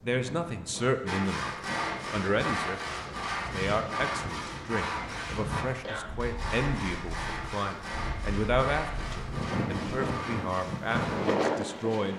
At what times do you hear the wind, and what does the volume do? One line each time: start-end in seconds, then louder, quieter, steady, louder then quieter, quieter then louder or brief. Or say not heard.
0.0-12.1 louder.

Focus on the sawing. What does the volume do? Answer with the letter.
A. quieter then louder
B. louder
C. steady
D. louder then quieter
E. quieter
E.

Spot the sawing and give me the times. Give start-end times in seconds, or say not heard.
1.1-11.3.